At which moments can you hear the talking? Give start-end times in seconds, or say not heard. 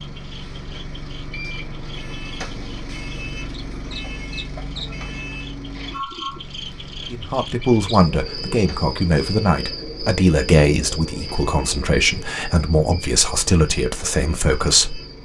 7.1-15.0.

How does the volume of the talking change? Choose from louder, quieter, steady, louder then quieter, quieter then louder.
steady.